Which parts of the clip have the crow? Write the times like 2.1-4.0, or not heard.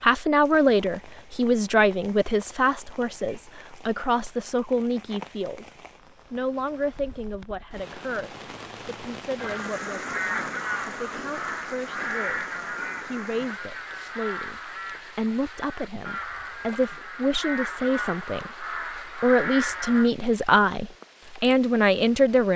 9.3-20.1.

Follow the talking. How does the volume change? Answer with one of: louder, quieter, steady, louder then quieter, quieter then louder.
quieter then louder.